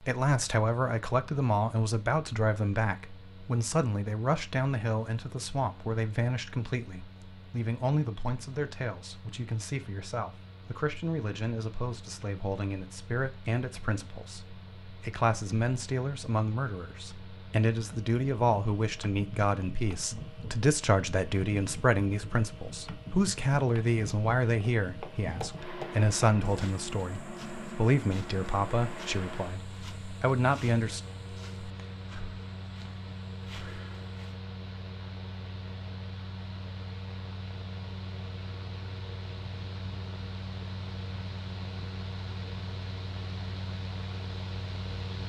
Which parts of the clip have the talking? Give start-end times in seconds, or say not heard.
0.0-31.0.